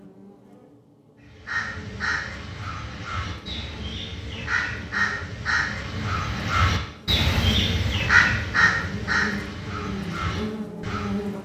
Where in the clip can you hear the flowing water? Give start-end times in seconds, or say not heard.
not heard.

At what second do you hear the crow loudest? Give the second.
8 s.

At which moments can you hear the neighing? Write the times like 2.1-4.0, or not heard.
not heard.